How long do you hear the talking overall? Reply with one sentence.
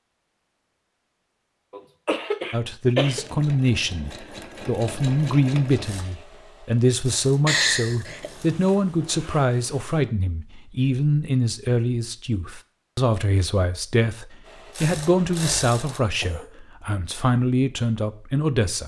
You can hear the talking for 16 seconds altogether.